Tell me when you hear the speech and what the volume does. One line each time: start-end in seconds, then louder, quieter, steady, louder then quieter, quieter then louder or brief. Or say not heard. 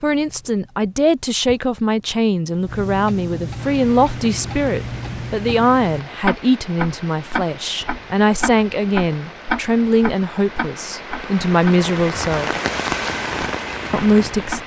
0.0-12.5 steady
13.9-14.6 brief.